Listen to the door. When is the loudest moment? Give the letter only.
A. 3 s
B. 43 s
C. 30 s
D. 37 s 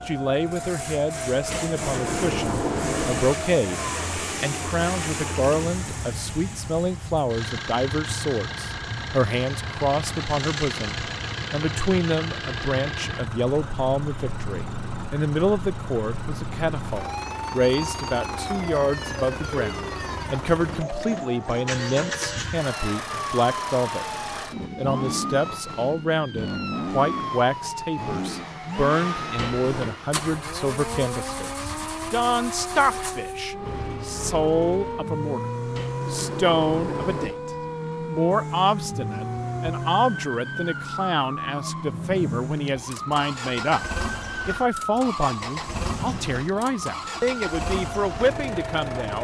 A.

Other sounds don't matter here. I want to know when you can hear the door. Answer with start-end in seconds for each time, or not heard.
1.5-3.4, 29.4-30.0, 35.8-37.4.